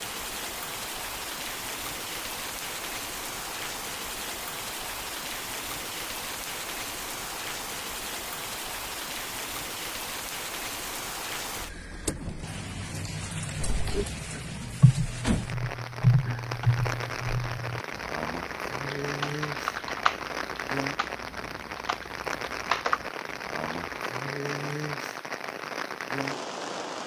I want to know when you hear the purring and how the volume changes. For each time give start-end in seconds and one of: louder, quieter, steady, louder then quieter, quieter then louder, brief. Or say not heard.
not heard.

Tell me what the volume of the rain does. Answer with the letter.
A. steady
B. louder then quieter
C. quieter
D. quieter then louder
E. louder
A.